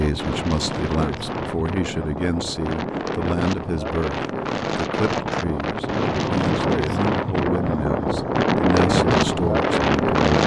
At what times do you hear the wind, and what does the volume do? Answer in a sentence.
The wind can be heard from 0.0 to 10.4 s, getting louder.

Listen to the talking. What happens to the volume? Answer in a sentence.
The loudness of the talking stays about the same.